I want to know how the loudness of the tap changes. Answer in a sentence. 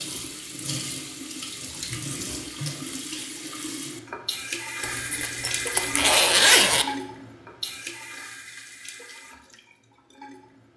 The volume of the tap goes down.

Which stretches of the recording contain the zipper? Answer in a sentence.
You can hear the zipper from 4.8 to 6.8 s.